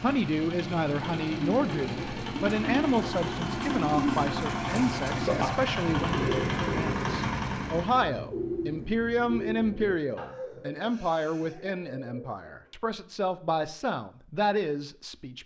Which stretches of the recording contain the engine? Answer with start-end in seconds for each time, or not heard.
0.0-8.1.